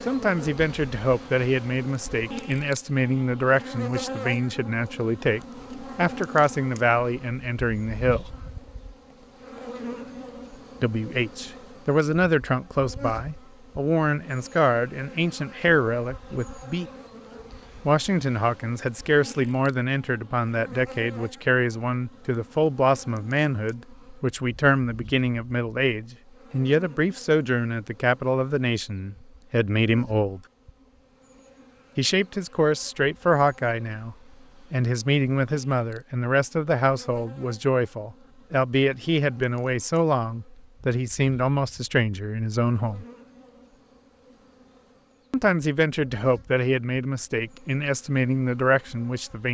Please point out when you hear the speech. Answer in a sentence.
You can hear the speech from 0.1 to 8.3 s, from 10.8 to 16.9 s, from 17.9 to 30.4 s, from 31.9 to 43.0 s and from 45.3 to 49.4 s.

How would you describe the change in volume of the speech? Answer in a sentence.
The loudness of the speech stays about the same.